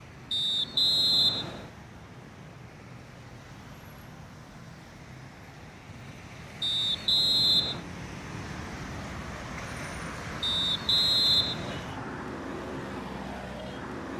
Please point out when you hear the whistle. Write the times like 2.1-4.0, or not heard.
0.3-1.7, 6.6-7.8, 10.4-11.9.